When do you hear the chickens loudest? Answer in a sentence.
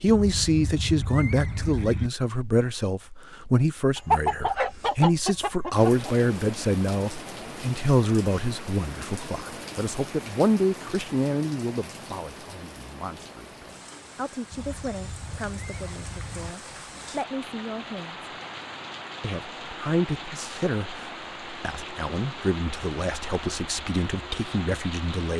The loudest moment of the chickens is at 4 seconds.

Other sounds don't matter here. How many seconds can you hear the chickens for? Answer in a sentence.
You can hear the chickens for 2 seconds altogether.